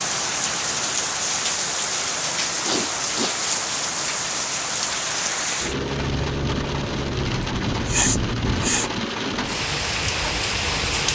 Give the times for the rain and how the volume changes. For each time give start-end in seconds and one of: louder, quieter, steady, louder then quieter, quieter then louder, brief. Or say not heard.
0.0-11.1 steady.